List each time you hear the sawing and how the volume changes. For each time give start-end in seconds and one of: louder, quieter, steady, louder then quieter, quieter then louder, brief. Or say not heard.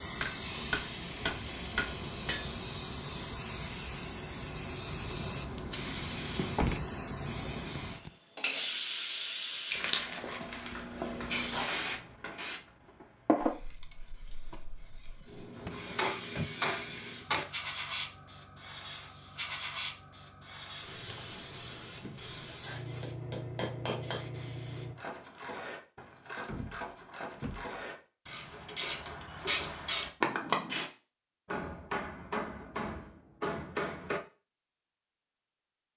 not heard.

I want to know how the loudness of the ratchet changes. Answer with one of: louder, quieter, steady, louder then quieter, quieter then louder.
louder.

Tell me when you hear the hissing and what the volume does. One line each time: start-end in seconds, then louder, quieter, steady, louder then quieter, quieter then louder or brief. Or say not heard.
0.0-24.9 quieter.